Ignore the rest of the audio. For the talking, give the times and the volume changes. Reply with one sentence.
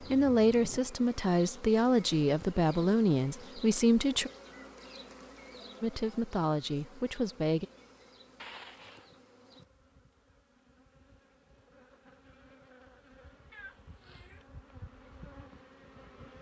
The talking can be heard from 0.1 to 4.3 s, at a steady volume; and briefly from 5.8 to 7.7 s.